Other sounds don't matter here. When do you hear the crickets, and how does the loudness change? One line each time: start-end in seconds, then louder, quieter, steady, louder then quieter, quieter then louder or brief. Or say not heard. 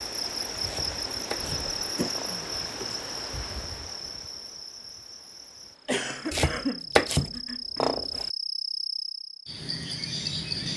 0.0-10.7 quieter then louder.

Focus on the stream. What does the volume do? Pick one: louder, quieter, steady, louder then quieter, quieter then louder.
quieter.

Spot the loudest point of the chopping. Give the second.
7 s.